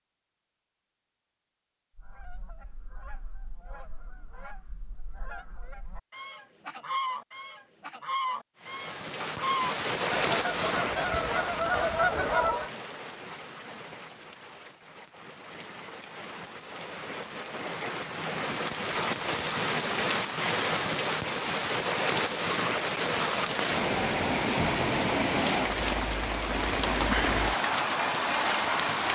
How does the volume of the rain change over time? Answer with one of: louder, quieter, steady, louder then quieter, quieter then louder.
quieter then louder.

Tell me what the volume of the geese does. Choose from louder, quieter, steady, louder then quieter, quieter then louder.
louder.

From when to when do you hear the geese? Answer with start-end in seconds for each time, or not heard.
1.9-12.7.